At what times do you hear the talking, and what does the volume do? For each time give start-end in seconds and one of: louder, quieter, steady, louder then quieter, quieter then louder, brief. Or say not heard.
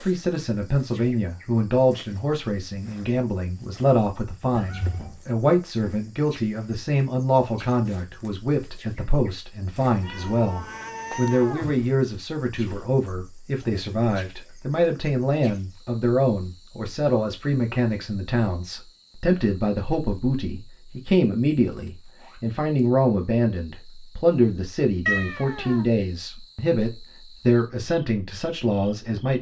0.0-29.3 steady.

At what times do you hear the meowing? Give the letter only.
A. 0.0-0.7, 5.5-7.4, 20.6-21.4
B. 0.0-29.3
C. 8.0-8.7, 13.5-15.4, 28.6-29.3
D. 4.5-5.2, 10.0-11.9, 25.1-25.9
D.